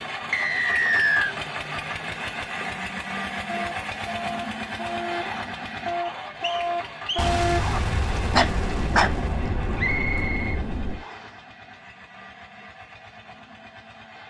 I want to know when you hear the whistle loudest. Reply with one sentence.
The volume of the whistle peaks at 1 second.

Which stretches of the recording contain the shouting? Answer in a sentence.
The shouting can't be heard in this clip.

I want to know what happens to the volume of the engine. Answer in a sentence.
The volume of the engine goes down.